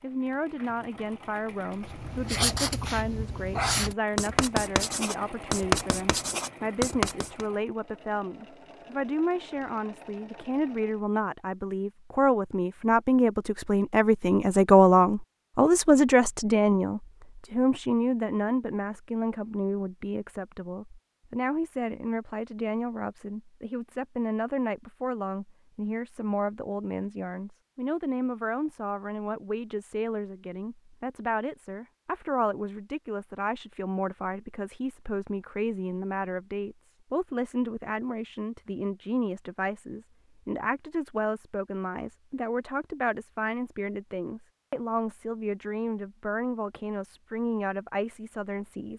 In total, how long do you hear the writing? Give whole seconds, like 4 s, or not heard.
6 s.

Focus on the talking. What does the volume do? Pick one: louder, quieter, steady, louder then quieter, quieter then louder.
louder then quieter.